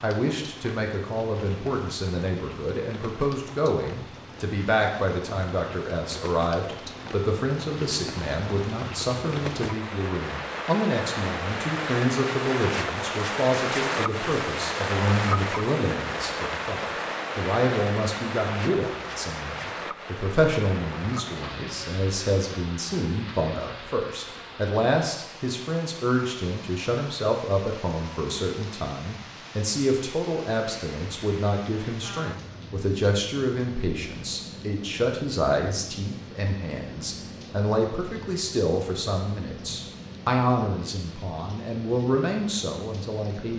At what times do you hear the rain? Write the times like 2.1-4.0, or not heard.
0.0-43.5.